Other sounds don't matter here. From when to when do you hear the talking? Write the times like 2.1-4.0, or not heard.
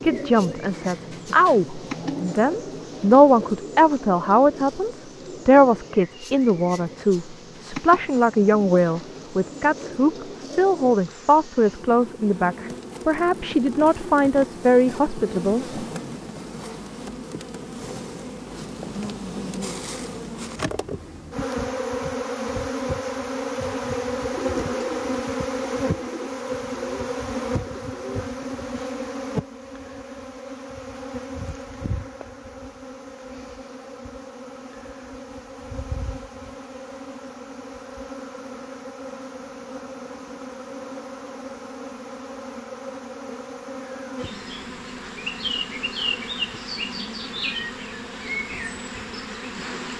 0.0-15.8.